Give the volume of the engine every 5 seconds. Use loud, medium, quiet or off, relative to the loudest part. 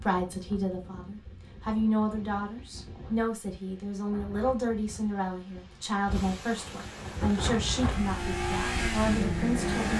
off, loud.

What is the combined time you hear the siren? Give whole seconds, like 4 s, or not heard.
not heard.